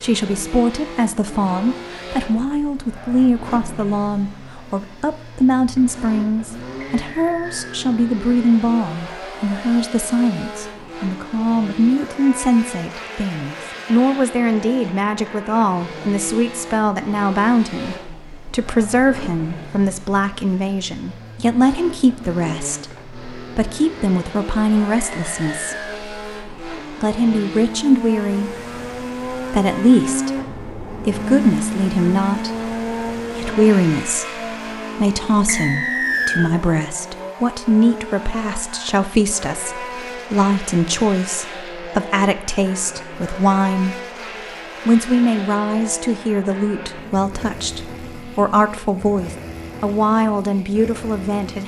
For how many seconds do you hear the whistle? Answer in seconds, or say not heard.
3 s.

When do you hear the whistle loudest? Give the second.
36 s.